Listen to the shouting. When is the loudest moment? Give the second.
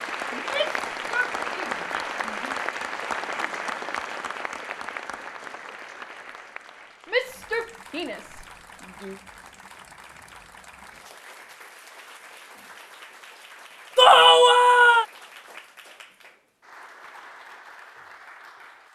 14 s.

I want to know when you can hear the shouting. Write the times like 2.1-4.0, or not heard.
0.3-2.5, 7.0-9.2, 13.9-15.1.